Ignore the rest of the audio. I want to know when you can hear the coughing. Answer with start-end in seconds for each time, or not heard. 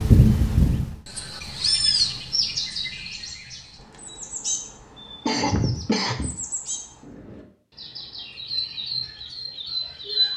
5.2-6.3.